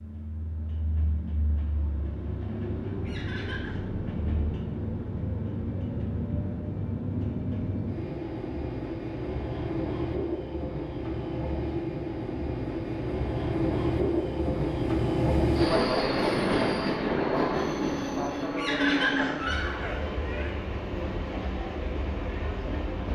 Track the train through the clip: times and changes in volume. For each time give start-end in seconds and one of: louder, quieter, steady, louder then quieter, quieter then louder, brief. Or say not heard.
0.0-23.1 louder then quieter.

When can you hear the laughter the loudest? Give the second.
19 s.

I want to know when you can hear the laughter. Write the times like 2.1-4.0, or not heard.
3.0-3.8, 18.6-20.6.